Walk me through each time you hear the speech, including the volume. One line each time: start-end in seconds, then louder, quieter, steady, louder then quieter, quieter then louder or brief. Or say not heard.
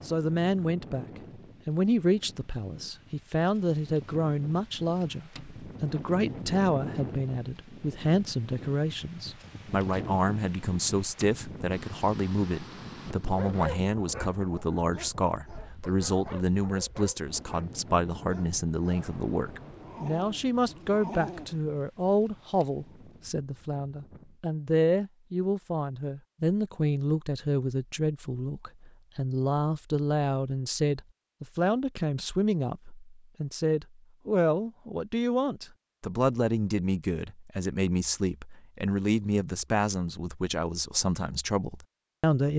0.1-42.5 steady.